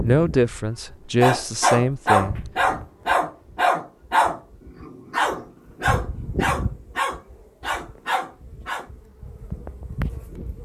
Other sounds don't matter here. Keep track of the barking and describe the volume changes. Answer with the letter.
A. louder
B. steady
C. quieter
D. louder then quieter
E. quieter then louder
C.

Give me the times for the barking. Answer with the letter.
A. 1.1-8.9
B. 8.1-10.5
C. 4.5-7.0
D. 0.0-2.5
A.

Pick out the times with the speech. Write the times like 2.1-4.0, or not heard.
0.0-2.5.